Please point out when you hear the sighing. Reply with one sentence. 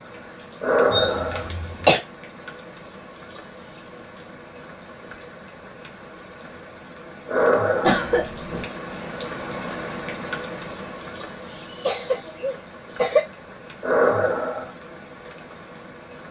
You can hear the sighing from 0.6 to 1.5 s, from 7.2 to 8.0 s and from 13.8 to 14.7 s.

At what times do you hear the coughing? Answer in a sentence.
You can hear the coughing from 0.9 to 2.0 s, from 7.8 to 8.7 s and from 11.7 to 13.2 s.